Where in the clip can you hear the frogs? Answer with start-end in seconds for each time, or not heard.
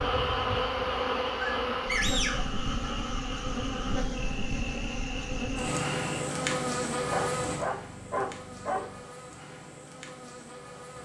0.0-6.2.